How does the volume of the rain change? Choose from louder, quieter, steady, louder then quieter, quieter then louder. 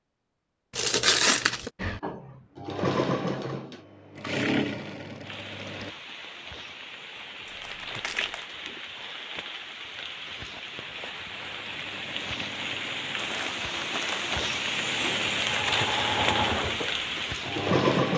louder.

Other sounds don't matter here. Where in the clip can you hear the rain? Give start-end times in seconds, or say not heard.
5.2-18.1.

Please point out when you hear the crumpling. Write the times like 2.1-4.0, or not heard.
0.7-1.7, 7.5-8.4, 13.2-14.4.